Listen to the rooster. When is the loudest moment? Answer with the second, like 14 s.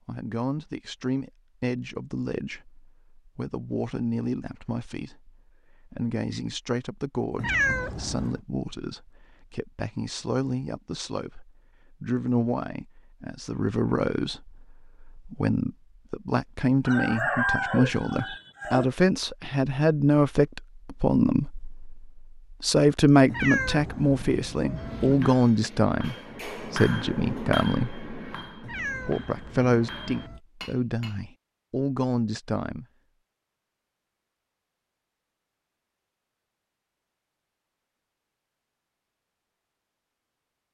17 s.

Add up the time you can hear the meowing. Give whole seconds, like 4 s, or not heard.
5 s.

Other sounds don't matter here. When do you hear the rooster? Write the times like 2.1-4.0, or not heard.
16.9-18.9.